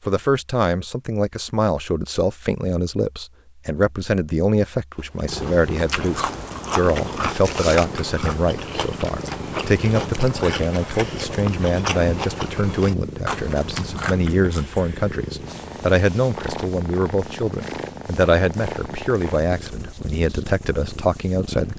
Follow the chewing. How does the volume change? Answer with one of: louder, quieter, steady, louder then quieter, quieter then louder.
steady.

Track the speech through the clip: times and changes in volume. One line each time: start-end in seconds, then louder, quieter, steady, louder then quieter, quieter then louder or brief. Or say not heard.
0.1-21.7 steady.